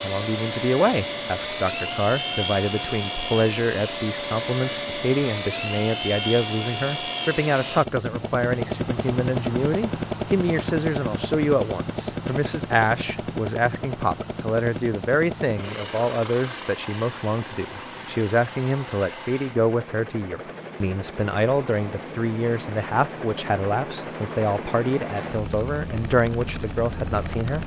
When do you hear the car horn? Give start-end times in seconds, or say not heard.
not heard.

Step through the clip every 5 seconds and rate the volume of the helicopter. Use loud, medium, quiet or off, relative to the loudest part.
loud, loud, loud, medium, medium, medium.